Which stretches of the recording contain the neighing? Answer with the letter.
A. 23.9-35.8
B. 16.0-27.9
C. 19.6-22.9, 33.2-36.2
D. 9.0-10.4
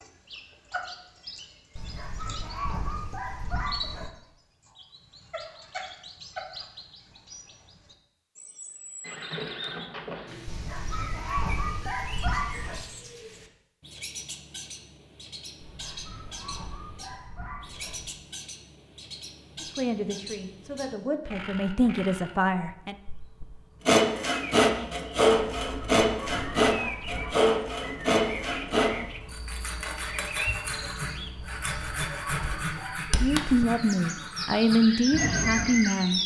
D.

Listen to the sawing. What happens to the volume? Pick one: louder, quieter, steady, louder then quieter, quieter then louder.
quieter.